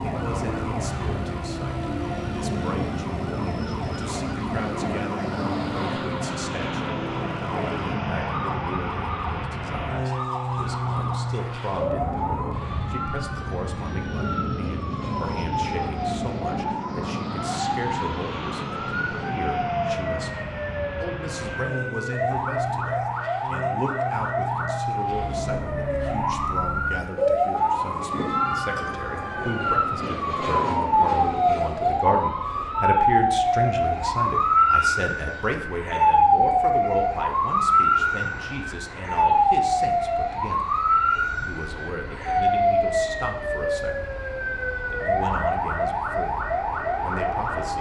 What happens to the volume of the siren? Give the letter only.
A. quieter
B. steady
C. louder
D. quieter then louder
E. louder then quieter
C.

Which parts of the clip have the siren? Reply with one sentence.
The siren can be heard from 0.0 to 47.7 s.